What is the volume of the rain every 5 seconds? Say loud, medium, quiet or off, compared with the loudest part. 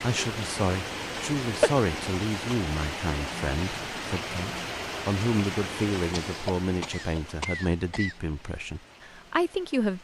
loud, medium.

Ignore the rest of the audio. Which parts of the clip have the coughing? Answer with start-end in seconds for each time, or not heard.
1.4-1.9, 6.1-8.2.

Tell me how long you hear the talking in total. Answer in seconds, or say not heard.
10 s.